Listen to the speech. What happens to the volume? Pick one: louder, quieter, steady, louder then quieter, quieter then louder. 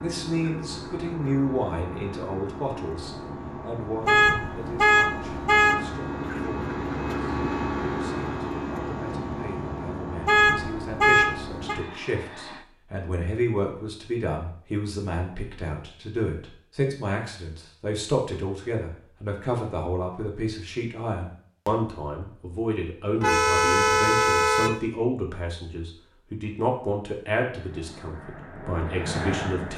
quieter then louder.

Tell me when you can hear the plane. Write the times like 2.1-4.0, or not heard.
0.0-12.7, 27.4-29.7.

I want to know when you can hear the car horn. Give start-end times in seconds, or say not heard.
4.0-5.8, 10.2-11.8, 23.2-24.8.